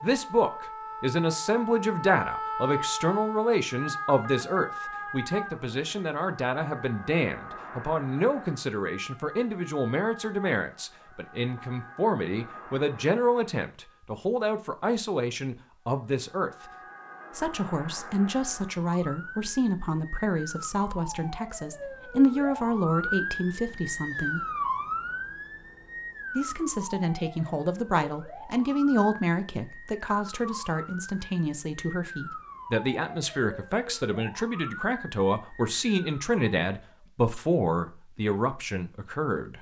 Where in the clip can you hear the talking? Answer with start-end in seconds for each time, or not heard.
0.0-16.5, 17.4-24.4, 26.4-39.5.